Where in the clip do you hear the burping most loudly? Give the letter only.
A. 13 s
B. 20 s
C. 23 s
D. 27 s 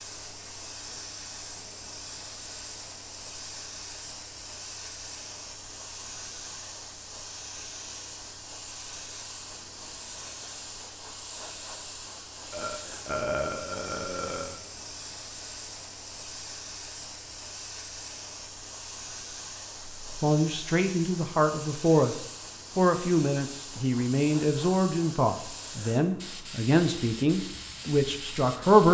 A.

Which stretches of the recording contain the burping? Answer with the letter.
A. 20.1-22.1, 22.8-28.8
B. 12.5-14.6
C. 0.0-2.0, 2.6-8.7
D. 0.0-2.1
B.